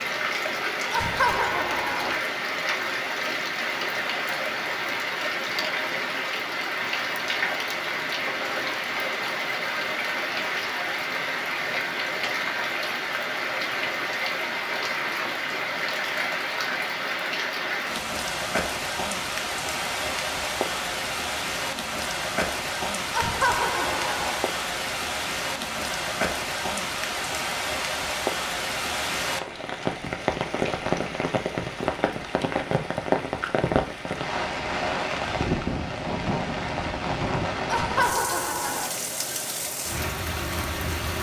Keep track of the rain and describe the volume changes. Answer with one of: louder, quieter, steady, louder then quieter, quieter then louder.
steady.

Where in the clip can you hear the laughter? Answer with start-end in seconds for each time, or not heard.
0.9-2.2, 23.1-24.4, 37.7-38.9.